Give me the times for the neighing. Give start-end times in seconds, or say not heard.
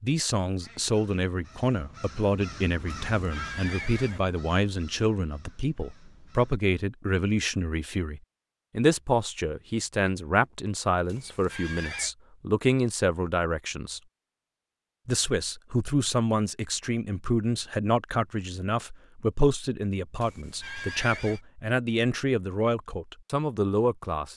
3.1-4.2, 11.1-12.2, 20.2-21.4.